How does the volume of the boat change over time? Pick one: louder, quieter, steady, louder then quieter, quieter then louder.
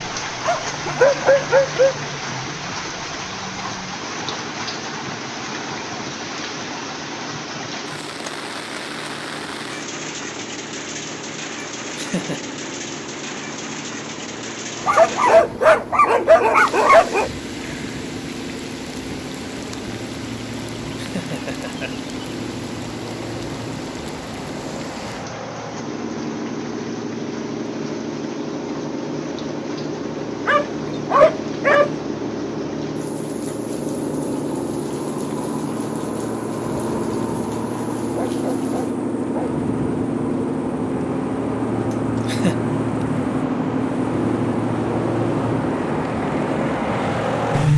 louder.